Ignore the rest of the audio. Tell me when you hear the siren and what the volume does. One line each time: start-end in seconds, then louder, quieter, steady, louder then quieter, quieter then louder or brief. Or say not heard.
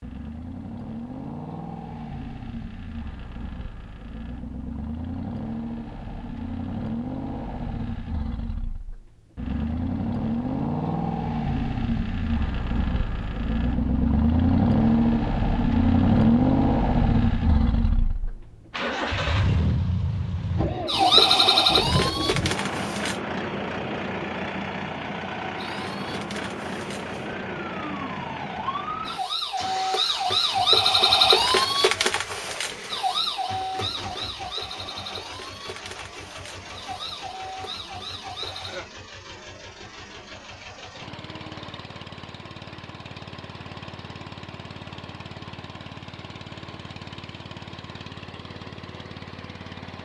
20.9-23.2 brief
25.6-38.8 louder then quieter.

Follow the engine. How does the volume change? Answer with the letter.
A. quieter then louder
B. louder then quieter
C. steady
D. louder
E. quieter
B.